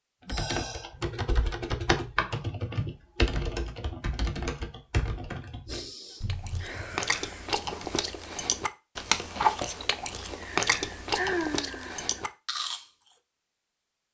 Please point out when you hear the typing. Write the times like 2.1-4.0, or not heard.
0.2-7.0.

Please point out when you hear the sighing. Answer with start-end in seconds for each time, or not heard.
0.2-0.9, 5.7-7.5, 10.3-12.3.